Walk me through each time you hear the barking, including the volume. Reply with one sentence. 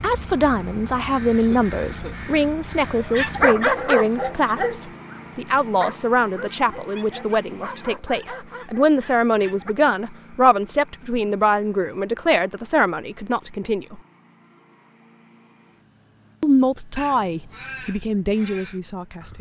You can hear the barking from 2.9 to 9.8 s, getting quieter.